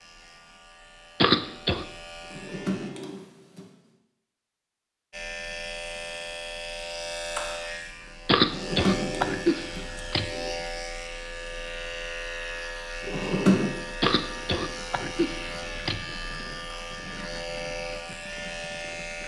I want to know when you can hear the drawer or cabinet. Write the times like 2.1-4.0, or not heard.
2.2-3.6, 8.4-10.5, 13.1-13.7.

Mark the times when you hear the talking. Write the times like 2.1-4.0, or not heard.
not heard.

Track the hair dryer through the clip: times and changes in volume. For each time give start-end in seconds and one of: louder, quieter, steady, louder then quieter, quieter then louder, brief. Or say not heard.
not heard.